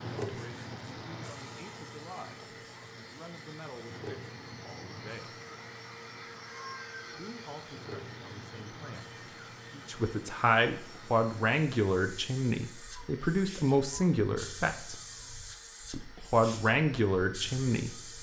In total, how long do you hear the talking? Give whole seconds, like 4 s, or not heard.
15 s.